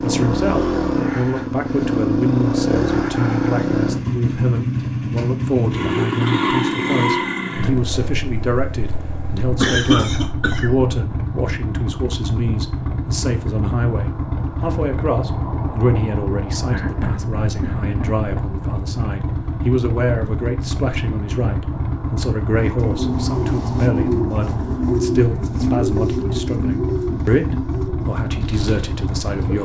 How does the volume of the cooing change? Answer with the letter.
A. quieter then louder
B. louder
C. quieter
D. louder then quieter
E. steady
C.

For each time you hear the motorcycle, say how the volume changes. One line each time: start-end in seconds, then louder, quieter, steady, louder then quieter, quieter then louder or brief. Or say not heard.
0.0-29.6 quieter.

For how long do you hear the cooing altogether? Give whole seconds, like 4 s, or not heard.
7 s.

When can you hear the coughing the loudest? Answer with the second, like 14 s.
10 s.